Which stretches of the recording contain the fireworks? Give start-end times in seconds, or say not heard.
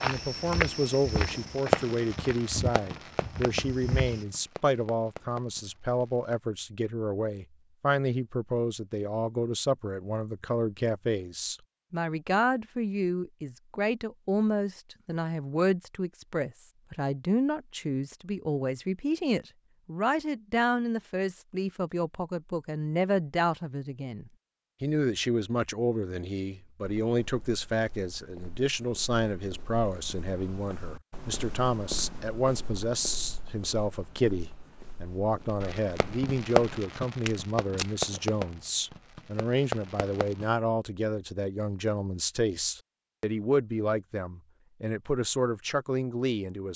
1.4-6.3, 35.6-40.5.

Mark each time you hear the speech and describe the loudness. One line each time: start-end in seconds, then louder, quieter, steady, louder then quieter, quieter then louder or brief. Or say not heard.
0.0-46.7 steady.